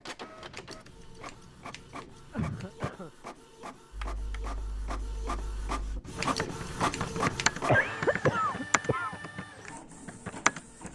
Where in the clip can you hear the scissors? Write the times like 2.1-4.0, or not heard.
0.3-2.9, 6.0-7.7.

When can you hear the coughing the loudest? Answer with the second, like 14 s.
8 s.